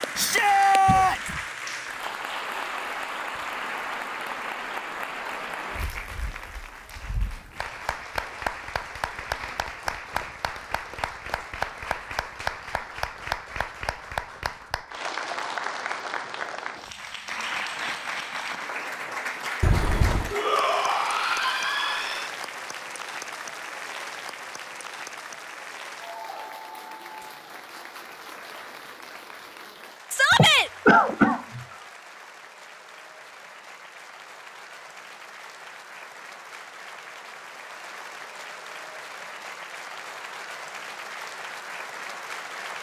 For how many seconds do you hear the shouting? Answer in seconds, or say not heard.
4 s.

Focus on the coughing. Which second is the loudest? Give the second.
31 s.